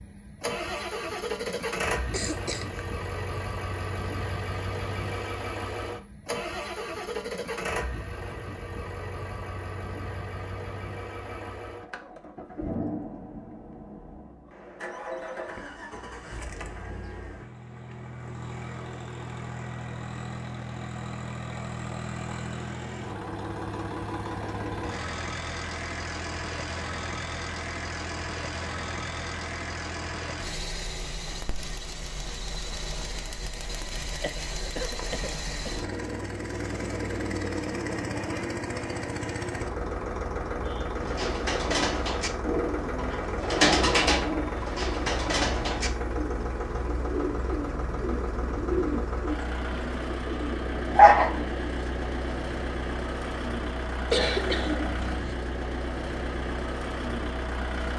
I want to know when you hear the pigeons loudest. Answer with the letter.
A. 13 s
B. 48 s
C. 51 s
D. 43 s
C.